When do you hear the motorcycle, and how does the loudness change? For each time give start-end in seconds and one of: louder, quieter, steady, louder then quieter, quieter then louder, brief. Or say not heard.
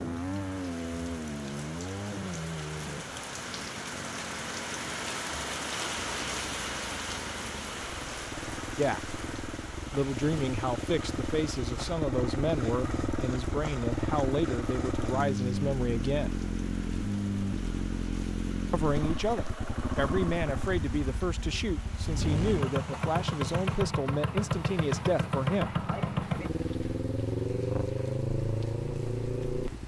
0.0-29.8 louder.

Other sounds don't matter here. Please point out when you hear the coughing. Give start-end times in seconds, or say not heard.
not heard.